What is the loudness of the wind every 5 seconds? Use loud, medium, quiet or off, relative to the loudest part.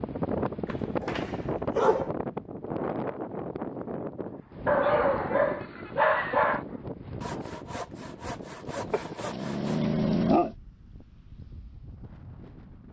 loud, medium, quiet.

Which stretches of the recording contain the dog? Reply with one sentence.
You can hear the dog from 0.7 to 2.1 s, from 4.7 to 6.7 s and from 8.9 to 10.6 s.